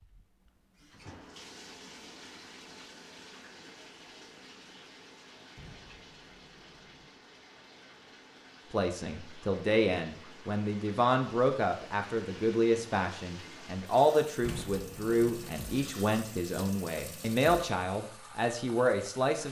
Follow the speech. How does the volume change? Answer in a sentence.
The loudness of the speech stays about the same.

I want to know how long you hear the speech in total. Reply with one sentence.
The speech can be heard for 11 seconds in total.